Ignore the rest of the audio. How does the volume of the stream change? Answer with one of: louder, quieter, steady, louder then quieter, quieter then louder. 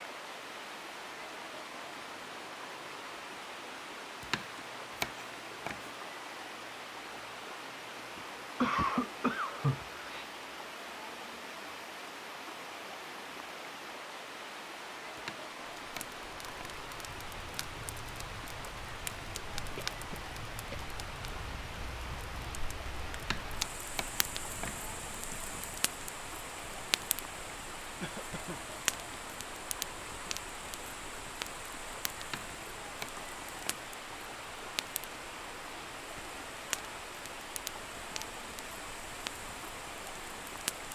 steady.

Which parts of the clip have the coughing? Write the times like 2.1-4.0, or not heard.
8.2-10.2, 19.8-20.9, 28.0-28.6.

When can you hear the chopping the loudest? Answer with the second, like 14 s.
5 s.